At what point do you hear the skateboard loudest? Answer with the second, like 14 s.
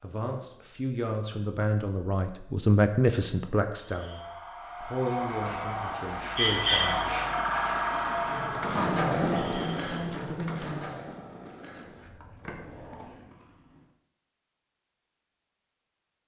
9 s.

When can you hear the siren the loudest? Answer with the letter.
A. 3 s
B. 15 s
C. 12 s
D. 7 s
D.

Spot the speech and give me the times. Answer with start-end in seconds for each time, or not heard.
0.0-7.2, 8.7-11.0.